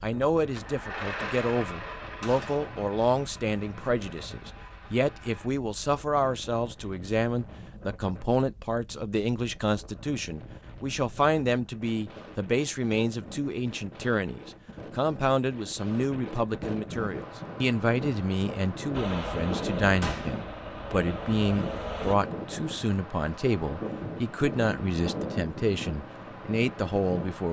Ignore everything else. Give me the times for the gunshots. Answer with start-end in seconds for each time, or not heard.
2.2-2.8, 20.0-20.4.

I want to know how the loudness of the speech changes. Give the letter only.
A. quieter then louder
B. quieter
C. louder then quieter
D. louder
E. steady
E.